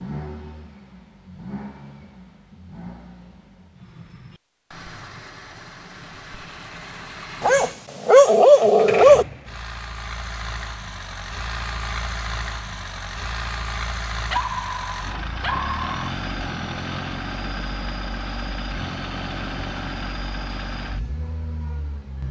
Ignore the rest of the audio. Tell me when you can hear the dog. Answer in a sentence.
You can hear the dog from 7.4 to 9.2 s and from 14.3 to 15.9 s.